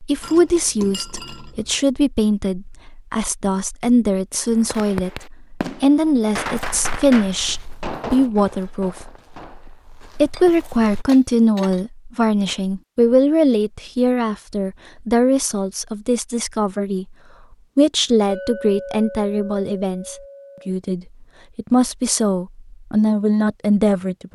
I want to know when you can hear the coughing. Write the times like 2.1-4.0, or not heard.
not heard.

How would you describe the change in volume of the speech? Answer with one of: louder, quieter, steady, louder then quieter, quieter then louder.
steady.